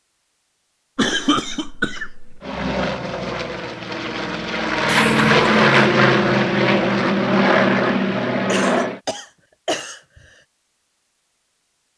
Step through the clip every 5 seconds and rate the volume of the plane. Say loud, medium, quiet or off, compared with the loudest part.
medium, loud, off.